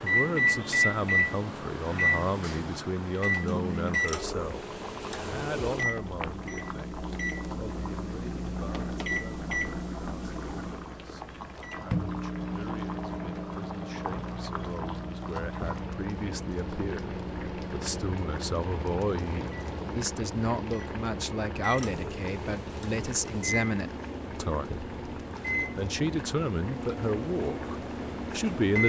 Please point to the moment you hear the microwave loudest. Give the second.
1 s.